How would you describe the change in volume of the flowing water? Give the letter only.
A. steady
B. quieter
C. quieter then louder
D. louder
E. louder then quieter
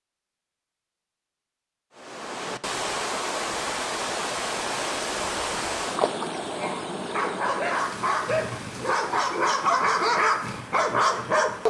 B.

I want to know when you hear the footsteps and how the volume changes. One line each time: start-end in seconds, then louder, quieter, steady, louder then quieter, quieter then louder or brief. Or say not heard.
not heard.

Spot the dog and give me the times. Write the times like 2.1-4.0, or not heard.
6.5-11.6.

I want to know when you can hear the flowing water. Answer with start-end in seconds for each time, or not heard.
1.9-11.6.